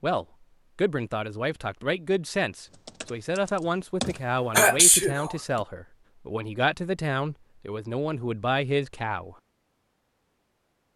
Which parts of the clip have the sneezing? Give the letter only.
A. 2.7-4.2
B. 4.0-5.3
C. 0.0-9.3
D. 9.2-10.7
B.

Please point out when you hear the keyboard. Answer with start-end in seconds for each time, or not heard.
2.7-4.2.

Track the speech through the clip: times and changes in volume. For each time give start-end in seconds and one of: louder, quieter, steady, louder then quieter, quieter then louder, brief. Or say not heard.
0.0-9.3 steady.